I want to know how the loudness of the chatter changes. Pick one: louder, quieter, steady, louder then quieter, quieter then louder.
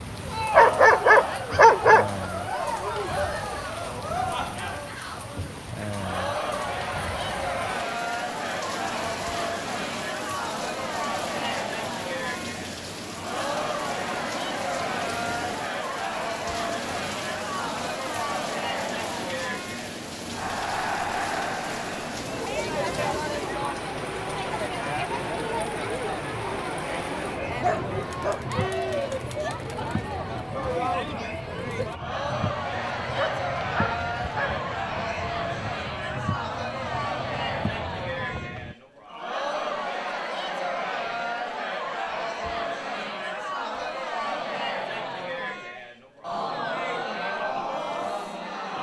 steady.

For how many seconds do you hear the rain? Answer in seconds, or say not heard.
39 s.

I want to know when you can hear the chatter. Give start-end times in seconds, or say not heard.
0.1-48.7.